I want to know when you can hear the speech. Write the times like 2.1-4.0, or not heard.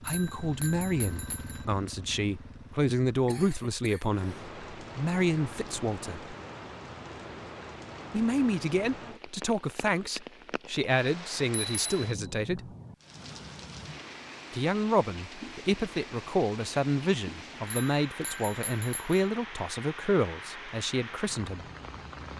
0.1-6.3, 8.1-12.7, 14.5-21.6.